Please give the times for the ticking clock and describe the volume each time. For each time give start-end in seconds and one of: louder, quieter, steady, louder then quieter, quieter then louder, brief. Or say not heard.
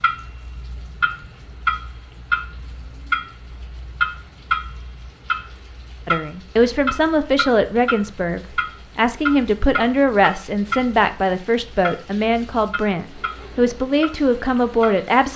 0.0-15.1 quieter.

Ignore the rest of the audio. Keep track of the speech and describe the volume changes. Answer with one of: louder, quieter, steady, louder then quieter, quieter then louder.
steady.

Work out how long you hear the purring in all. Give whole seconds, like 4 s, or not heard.
not heard.